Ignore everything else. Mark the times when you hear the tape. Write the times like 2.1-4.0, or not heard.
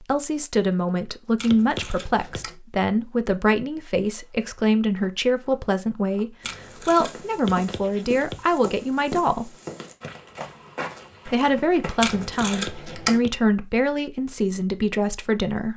1.4-2.5, 6.4-7.5, 12.0-13.2.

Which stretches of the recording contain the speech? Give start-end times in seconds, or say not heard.
0.0-9.5, 11.2-15.7.